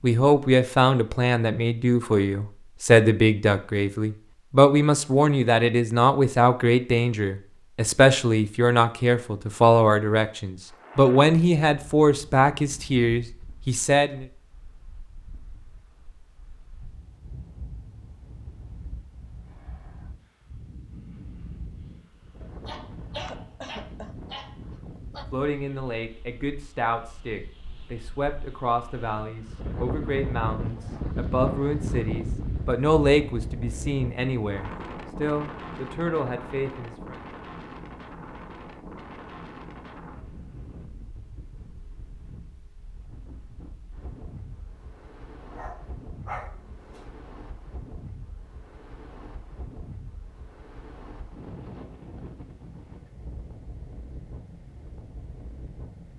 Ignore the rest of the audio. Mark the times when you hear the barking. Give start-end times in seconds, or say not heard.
22.4-25.2, 45.5-47.1.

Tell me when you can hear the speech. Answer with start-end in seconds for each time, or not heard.
0.0-14.2, 25.3-37.2.